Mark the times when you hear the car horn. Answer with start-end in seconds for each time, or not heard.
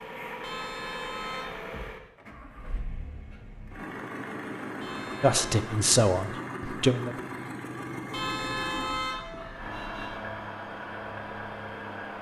0.4-1.9, 4.8-5.5, 8.1-10.2.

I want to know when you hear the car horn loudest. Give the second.
9 s.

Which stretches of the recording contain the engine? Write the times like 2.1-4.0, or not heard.
0.0-12.1.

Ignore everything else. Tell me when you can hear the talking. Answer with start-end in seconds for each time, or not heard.
5.2-7.2.